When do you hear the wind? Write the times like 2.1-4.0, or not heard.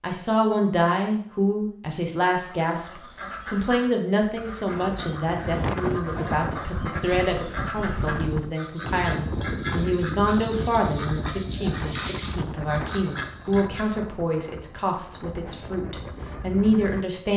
4.7-17.3.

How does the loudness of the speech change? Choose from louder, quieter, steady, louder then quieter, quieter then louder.
steady.